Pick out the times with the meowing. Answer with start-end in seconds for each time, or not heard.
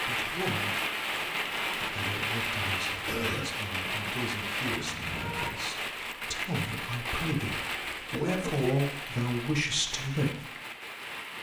4.7-5.5.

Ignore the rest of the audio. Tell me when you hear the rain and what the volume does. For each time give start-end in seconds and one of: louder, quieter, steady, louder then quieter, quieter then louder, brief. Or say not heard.
0.0-11.3 quieter.